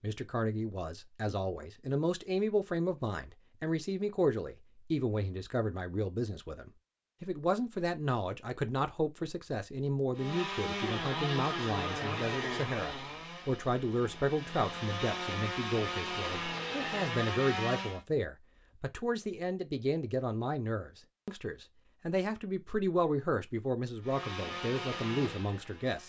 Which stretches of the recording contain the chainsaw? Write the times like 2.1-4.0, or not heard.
10.2-18.0, 24.0-26.0.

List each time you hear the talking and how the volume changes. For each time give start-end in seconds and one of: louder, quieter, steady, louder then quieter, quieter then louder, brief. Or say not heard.
0.0-26.0 steady.